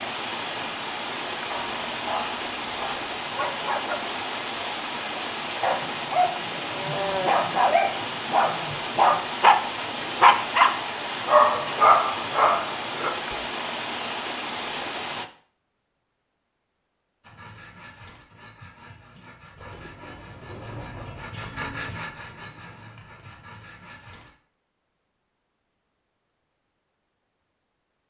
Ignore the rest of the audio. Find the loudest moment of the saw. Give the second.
22 s.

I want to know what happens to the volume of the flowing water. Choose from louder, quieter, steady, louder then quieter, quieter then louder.
steady.